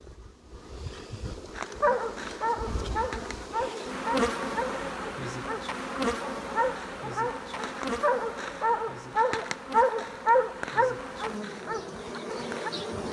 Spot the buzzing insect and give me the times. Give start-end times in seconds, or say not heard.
0.0-13.0.